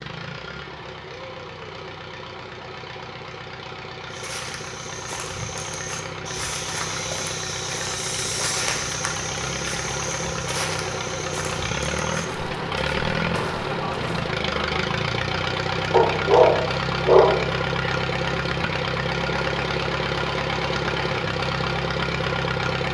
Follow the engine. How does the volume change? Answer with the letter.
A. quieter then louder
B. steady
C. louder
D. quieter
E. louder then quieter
C.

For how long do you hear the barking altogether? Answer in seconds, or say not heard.
2 s.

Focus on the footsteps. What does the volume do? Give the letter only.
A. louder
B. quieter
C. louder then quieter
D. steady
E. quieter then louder
C.